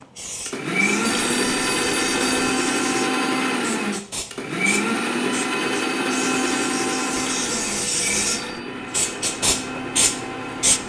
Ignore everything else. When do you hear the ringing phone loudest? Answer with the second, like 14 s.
2 s.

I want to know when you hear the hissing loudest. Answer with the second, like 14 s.
10 s.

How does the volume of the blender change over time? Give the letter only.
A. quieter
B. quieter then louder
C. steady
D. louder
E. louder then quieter
A.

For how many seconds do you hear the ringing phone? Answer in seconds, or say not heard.
3 s.